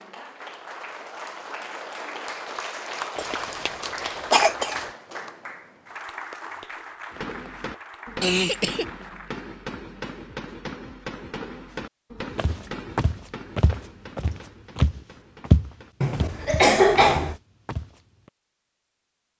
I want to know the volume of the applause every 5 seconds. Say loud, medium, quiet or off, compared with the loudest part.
loud, medium, off, off.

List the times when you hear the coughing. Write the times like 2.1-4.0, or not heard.
3.1-4.8, 8.2-8.8, 16.0-17.4.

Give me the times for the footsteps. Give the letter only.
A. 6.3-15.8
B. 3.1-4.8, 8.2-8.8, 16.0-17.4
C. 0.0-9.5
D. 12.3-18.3
D.